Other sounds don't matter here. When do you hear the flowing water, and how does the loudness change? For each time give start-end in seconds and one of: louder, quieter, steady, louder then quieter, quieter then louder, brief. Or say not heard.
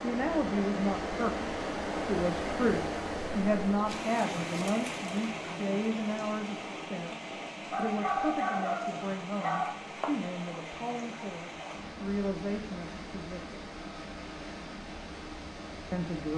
0.0-16.3 quieter.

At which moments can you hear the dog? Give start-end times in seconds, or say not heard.
7.7-9.8.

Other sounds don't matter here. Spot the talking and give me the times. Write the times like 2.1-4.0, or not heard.
0.0-13.6, 15.9-16.3.